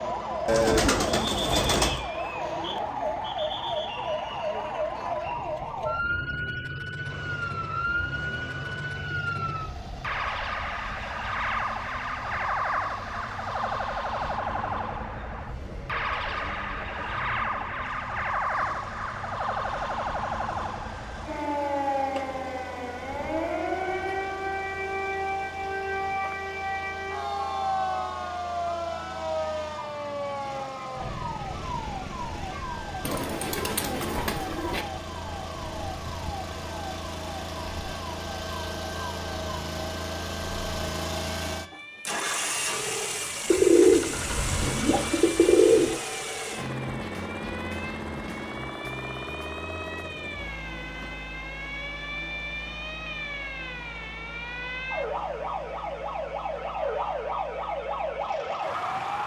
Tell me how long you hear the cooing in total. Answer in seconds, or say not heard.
6 s.